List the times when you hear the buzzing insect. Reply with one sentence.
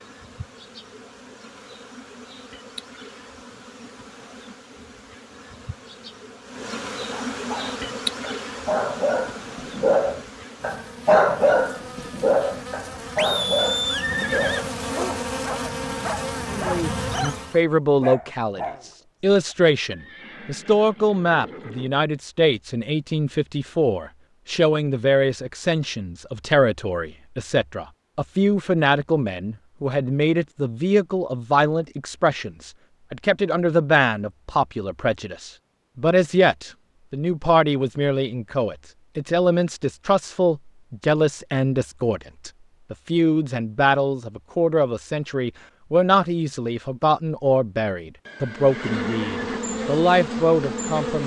The buzzing insect can be heard from 0.0 to 17.6 s and from 48.5 to 51.2 s.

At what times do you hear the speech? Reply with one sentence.
The speech can be heard from 16.5 to 51.2 s.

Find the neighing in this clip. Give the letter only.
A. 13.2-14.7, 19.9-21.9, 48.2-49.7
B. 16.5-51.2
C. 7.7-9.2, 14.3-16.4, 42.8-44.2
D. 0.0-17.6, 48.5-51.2
A.